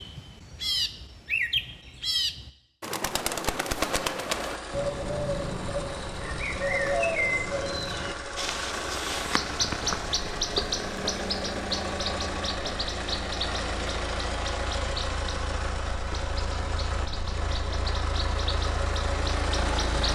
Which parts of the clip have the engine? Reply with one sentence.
The engine can be heard from 4.2 to 20.0 s.